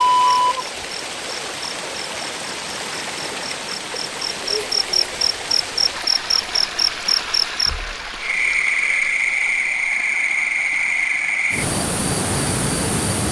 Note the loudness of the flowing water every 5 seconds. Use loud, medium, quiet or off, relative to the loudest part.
loud, loud, medium.